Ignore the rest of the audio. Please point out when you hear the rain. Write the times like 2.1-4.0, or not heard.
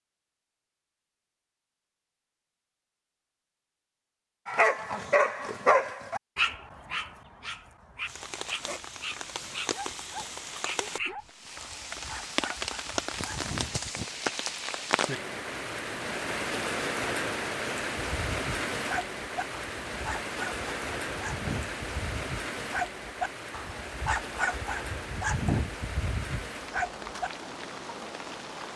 8.1-28.7.